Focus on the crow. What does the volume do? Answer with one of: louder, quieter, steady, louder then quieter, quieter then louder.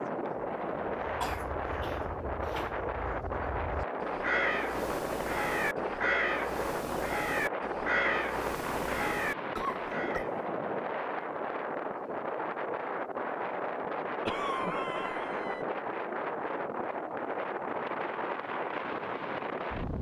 louder.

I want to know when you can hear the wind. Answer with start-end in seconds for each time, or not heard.
0.0-19.9.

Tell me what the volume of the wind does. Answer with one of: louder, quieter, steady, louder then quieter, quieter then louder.
steady.